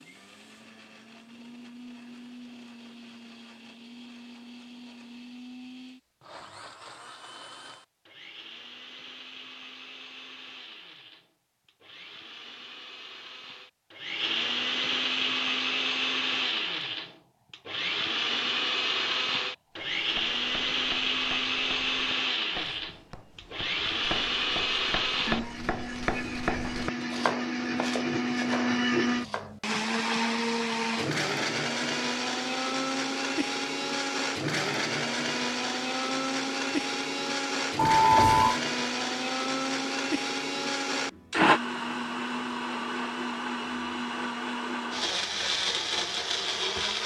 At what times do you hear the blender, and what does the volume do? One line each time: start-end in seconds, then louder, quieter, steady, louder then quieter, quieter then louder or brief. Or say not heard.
0.0-47.0 louder.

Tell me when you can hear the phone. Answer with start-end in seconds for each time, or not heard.
37.8-38.6.